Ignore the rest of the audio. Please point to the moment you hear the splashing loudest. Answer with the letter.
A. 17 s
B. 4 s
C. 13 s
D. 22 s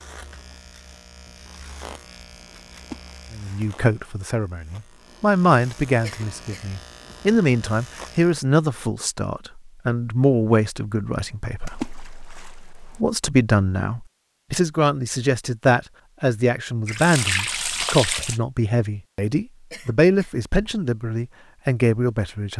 A.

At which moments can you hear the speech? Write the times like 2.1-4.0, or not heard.
3.3-22.5.